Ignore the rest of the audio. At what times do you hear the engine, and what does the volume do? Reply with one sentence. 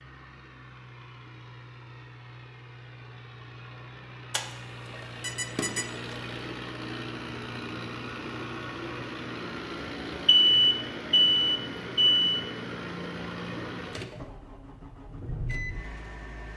You can hear the engine from 0.0 to 16.5 s, getting louder.